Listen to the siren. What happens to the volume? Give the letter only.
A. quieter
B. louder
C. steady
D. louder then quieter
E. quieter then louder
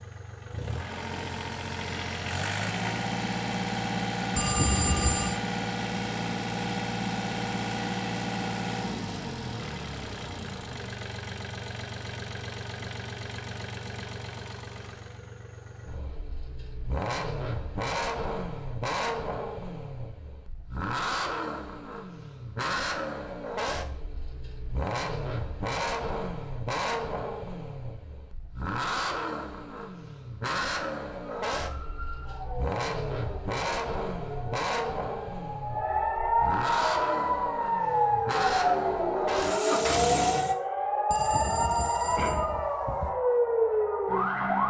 B.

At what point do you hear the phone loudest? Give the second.
5 s.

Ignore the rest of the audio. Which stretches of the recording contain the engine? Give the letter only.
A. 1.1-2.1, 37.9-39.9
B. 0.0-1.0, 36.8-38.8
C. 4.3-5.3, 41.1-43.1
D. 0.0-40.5
D.